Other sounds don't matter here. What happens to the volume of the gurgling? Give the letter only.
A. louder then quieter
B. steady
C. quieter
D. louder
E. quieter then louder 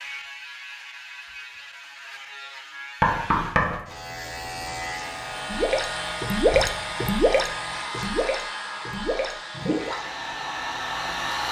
C.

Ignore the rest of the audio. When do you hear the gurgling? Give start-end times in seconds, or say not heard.
5.5-10.0.